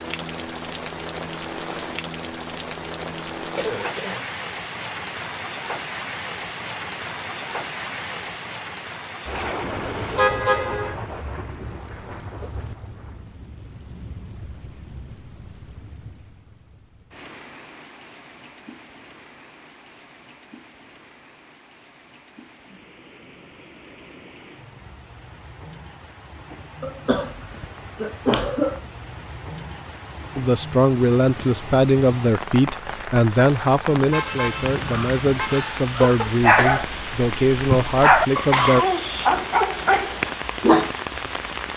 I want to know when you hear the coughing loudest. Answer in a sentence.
The loudest moment of the coughing is at 28 seconds.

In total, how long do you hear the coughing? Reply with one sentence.
You can hear the coughing for 3 seconds altogether.